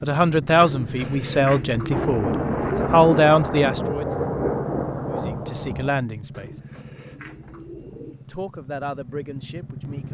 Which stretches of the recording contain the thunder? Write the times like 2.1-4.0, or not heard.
1.9-5.9.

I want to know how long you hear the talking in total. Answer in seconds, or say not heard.
7 s.